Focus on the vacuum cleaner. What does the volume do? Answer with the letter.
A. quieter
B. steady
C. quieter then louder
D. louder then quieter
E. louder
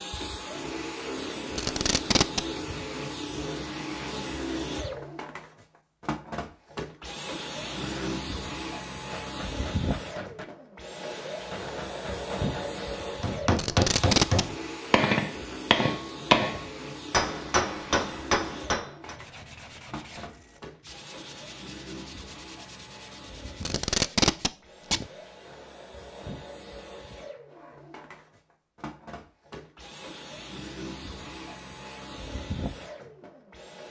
A.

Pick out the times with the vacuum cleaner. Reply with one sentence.
The vacuum cleaner can be heard from 0.0 to 33.8 s.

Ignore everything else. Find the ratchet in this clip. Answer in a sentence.
The ratchet can't be heard in this clip.